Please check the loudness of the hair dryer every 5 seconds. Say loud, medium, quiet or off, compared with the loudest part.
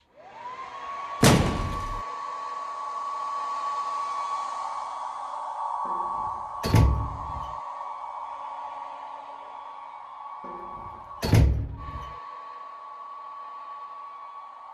loud, loud, medium.